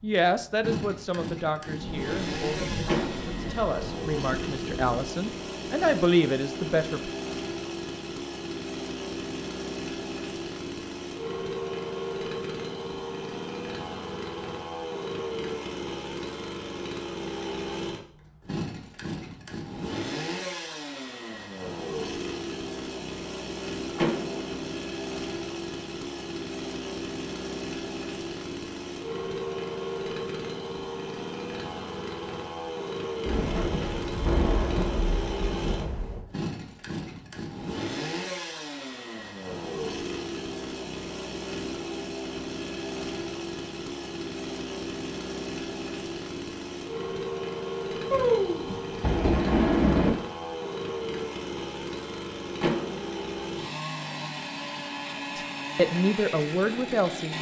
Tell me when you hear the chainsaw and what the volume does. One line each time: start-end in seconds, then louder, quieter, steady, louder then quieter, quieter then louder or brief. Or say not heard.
0.0-57.3 steady.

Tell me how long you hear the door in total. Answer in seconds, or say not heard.
2 s.